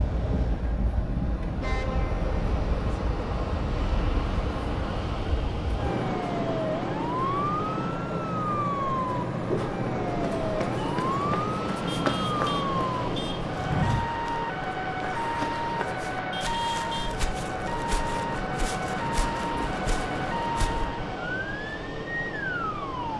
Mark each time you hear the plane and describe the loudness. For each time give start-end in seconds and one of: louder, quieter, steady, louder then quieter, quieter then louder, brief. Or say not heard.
0.0-23.1 steady.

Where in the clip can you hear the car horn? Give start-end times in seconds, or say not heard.
1.6-2.4, 11.8-13.4, 16.3-17.2.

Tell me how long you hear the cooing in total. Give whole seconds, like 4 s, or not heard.
not heard.